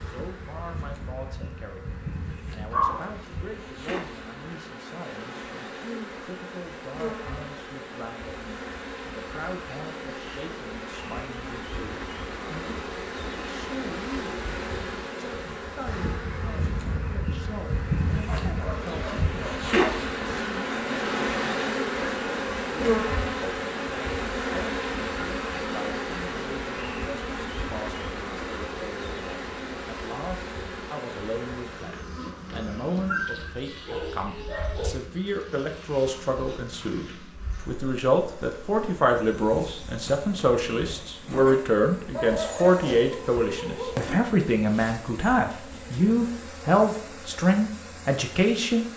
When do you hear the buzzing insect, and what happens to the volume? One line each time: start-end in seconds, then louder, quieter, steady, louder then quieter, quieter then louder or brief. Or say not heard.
0.0-48.9 louder then quieter.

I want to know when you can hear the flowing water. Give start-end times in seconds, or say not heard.
not heard.